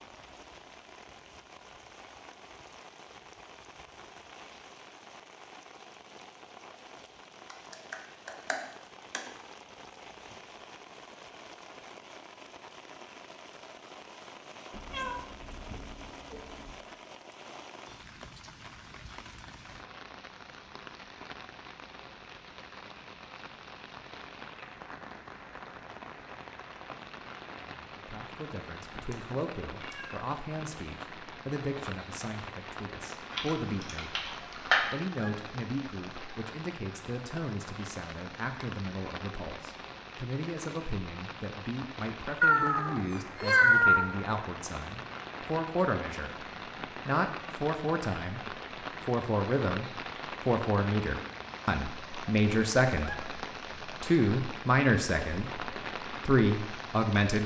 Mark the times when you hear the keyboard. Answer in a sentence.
You can hear the keyboard from 7.5 to 9.2 s and from 33.3 to 34.9 s.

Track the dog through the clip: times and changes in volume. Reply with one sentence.
You can't hear the dog here.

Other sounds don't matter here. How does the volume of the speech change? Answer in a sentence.
The volume of the speech goes up.